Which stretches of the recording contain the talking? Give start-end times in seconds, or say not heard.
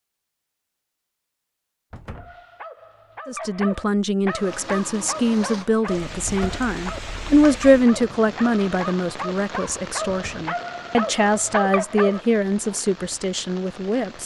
3.2-14.2.